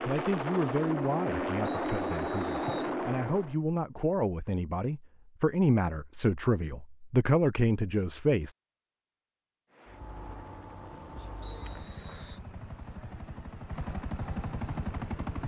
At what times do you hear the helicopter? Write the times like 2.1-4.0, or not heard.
0.0-3.5, 9.7-15.4.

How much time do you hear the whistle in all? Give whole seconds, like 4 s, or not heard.
2 s.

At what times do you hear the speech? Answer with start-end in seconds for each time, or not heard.
0.1-8.6.